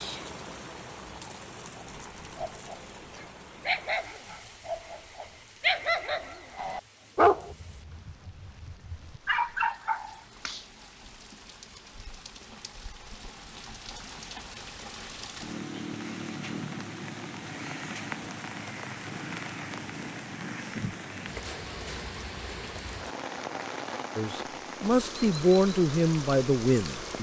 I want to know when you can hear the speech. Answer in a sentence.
The speech can be heard from 24.1 to 27.1 s.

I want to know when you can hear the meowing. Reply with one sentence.
You can't hear the meowing here.